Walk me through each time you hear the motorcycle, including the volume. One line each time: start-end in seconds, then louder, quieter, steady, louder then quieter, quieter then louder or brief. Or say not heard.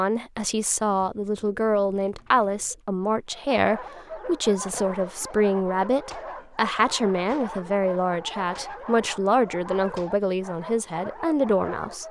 not heard.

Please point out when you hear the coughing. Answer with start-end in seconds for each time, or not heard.
not heard.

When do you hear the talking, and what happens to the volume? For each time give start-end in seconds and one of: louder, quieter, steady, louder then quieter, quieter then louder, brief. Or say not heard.
0.0-12.0 steady.